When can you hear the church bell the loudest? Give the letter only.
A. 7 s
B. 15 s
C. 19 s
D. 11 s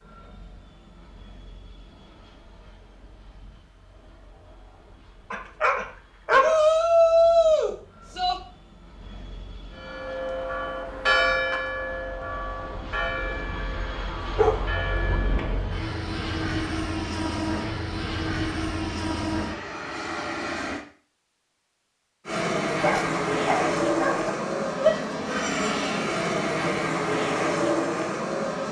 D.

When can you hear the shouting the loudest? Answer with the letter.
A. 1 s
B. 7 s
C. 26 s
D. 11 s
B.